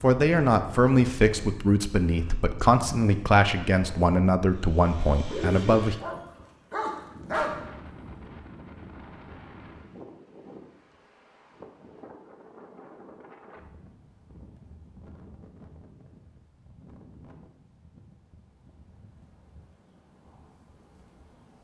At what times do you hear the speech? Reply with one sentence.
You can hear the speech from 0.0 to 6.0 s.